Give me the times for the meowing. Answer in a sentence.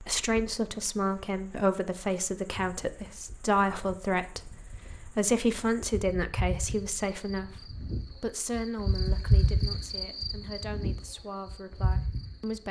The meowing can't be heard in this clip.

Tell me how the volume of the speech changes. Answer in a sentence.
The volume of the speech goes down.